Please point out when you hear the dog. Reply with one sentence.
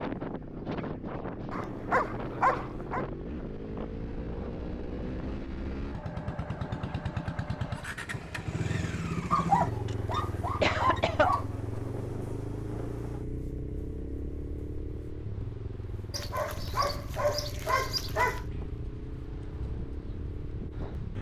The dog can be heard from 1.5 to 3.0 s, from 9.3 to 11.4 s and from 16.1 to 18.4 s.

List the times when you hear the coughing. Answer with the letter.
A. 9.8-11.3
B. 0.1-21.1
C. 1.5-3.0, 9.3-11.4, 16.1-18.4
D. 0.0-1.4
A.